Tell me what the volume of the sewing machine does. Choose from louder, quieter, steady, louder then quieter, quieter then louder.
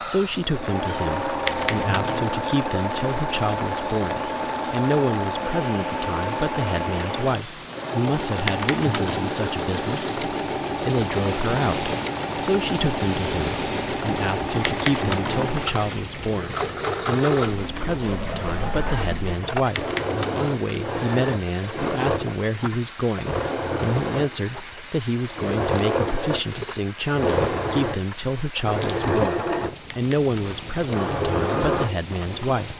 steady.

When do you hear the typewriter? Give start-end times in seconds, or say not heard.
1.4-2.3, 8.4-9.3, 14.6-15.5, 19.7-20.6, 29.9-30.8.